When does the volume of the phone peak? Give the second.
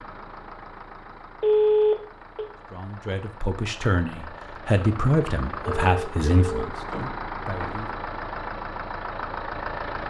2 s.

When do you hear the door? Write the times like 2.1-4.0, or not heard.
6.8-7.8.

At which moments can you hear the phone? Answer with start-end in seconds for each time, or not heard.
1.4-2.5, 5.7-6.7.